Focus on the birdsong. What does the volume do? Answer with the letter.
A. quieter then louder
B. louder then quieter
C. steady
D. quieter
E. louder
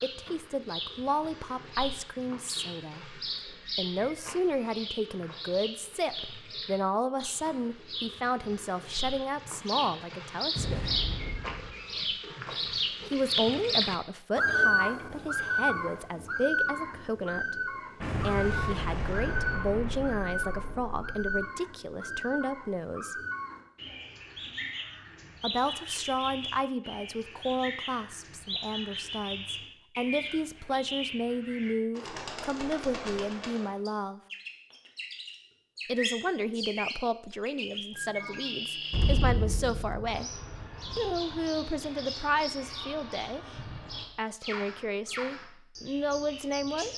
B.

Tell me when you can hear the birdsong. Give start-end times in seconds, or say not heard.
0.0-46.9.